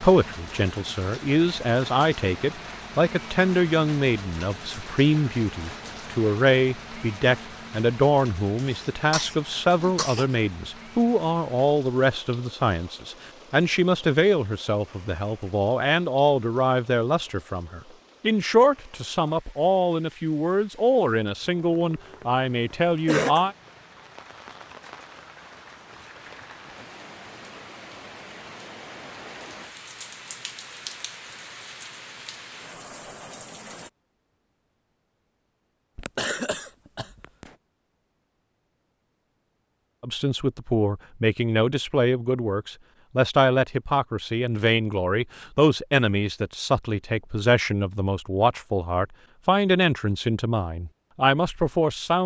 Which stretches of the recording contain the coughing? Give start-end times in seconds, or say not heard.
8.6-10.2, 23.1-23.5, 36.0-37.5.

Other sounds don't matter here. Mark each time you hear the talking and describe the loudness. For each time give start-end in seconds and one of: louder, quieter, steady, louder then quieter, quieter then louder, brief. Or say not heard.
0.0-23.6 steady
40.0-52.2 steady.